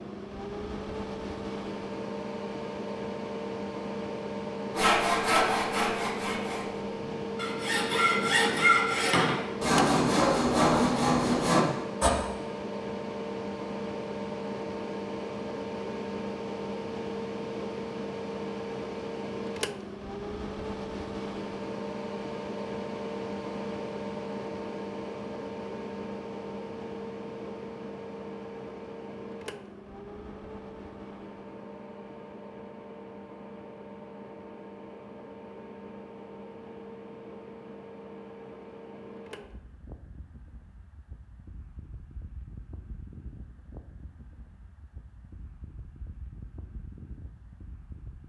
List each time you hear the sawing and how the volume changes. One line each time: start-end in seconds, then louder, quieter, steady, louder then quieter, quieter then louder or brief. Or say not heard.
4.8-12.1 quieter then louder.